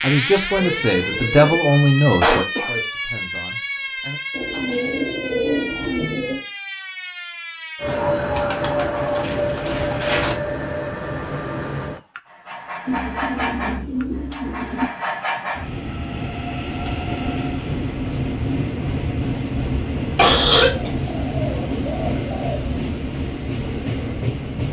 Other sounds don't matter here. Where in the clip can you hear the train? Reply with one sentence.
The train can be heard from 7.8 to 24.6 s.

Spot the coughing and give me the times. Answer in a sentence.
You can hear the coughing from 2.2 to 2.8 s and from 20.1 to 20.9 s.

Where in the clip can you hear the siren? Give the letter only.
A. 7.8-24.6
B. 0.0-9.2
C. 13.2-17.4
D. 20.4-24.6
B.